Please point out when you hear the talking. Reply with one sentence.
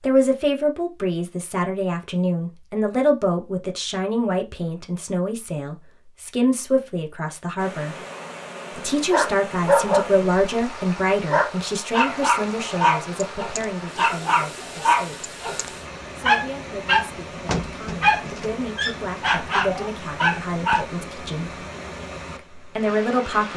The talking can be heard from 0.0 to 8.0 s, from 8.8 to 15.3 s, from 16.1 to 21.6 s and from 22.6 to 23.5 s.